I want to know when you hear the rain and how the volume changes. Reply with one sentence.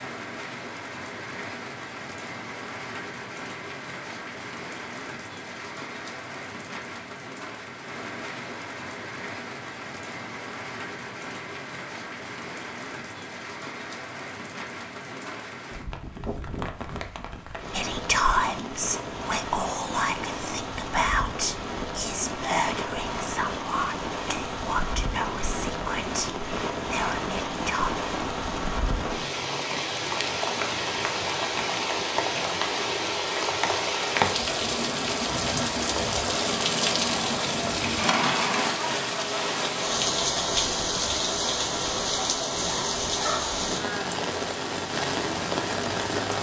The rain can be heard from 0.0 to 46.3 s, getting louder.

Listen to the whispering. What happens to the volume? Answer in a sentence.
The volume of the whispering goes down.